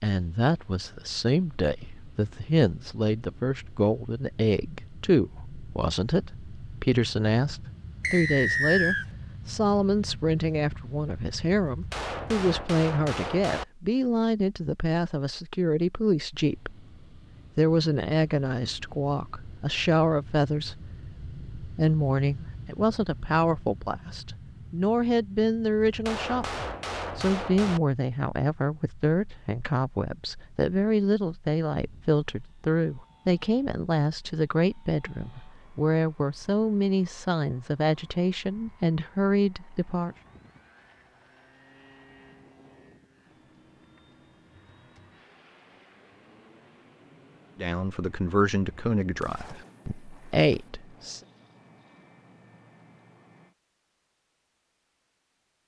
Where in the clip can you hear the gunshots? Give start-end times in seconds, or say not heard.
11.7-13.7, 25.9-27.8, 49.2-50.7.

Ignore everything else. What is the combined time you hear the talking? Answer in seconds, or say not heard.
43 s.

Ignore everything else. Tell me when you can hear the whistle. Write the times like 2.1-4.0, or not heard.
8.0-9.1.